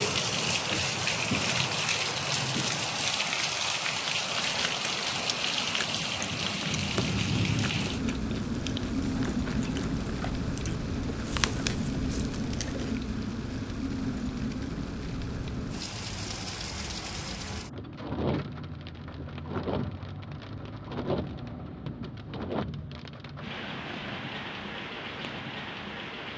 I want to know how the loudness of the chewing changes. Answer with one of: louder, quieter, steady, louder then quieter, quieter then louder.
louder.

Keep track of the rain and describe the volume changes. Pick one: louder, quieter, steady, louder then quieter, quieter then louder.
quieter.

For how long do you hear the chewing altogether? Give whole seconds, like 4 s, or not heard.
9 s.